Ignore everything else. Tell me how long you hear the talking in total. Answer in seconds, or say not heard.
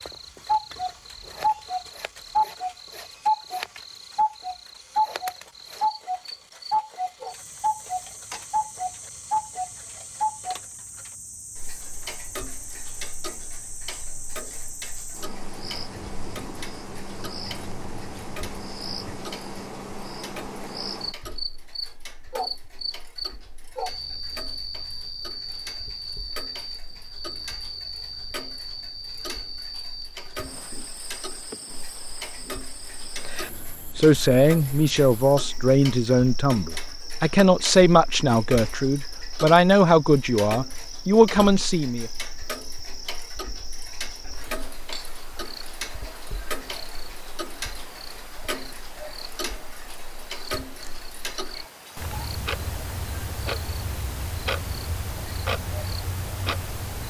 8 s.